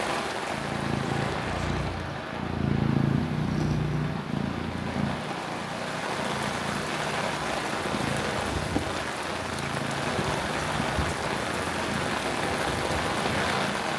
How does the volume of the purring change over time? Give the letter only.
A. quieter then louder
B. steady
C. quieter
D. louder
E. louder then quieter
C.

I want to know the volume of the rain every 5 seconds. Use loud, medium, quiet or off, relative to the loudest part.
medium, loud, loud.